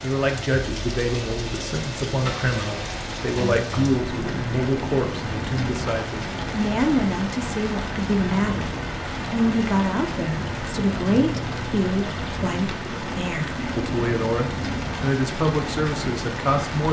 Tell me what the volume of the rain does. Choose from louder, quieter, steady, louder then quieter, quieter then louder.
steady.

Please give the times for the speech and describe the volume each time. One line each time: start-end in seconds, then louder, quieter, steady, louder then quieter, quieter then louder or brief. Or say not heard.
0.0-16.8 steady.